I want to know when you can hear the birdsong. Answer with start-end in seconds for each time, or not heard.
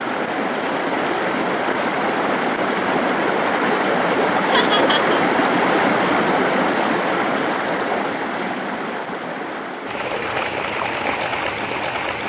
not heard.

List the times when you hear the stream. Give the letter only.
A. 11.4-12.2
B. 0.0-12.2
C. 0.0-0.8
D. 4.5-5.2
B.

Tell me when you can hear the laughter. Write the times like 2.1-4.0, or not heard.
4.5-5.2.